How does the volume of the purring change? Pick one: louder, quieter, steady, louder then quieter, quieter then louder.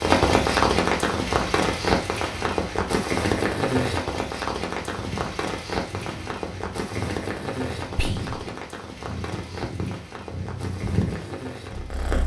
louder.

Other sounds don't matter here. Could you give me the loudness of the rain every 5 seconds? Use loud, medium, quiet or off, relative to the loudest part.
loud, medium, quiet.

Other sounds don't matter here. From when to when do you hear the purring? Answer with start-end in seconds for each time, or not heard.
4.8-12.2.